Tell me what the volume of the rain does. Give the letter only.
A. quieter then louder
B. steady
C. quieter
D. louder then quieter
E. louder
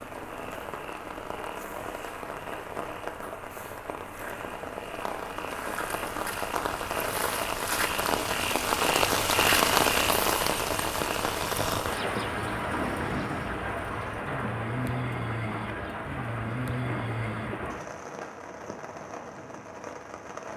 D.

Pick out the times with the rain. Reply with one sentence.
You can hear the rain from 0.0 to 20.5 s.